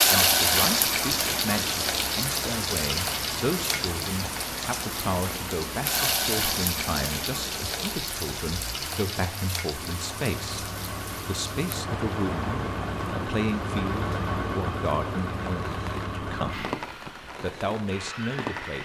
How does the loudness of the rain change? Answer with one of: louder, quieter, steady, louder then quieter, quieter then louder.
quieter.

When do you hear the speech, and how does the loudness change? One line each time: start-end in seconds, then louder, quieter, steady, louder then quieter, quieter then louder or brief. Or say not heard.
0.0-18.8 steady.